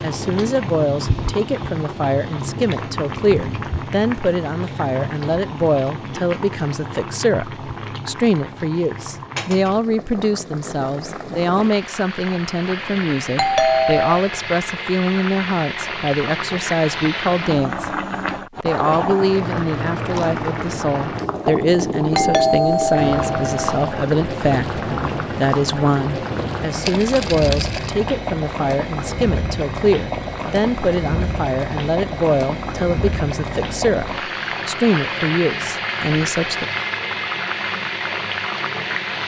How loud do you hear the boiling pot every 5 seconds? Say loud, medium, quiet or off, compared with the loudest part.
loud, medium, medium, loud, loud, loud, loud, loud.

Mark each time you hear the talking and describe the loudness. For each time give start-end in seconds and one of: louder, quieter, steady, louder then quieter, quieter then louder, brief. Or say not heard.
0.0-17.9 steady
18.6-36.6 steady.